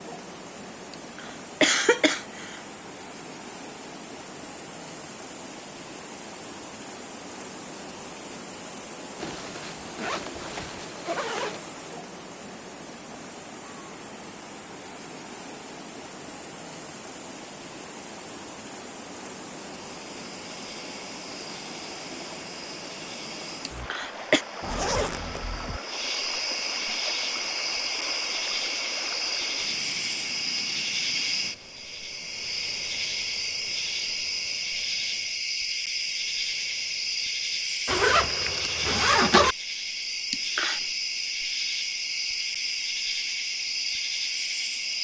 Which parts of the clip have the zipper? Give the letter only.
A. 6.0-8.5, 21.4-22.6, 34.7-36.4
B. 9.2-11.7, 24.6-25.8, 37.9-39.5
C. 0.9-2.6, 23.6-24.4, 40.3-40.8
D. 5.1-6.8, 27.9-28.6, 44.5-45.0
B.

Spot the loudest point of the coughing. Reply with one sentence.
The loudest moment of the coughing is at 2 seconds.